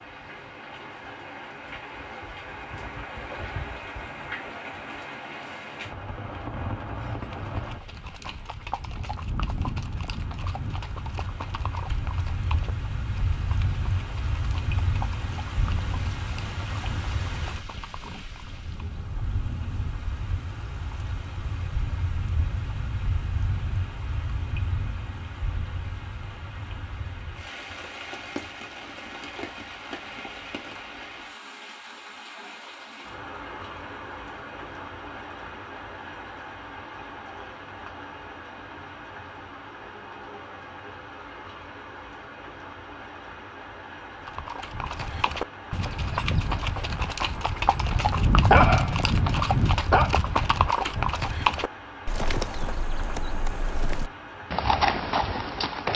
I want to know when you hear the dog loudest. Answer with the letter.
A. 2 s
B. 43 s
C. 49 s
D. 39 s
C.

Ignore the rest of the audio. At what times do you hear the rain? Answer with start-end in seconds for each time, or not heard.
0.0-55.9.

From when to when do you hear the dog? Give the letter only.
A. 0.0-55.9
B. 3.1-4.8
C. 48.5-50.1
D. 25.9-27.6
C.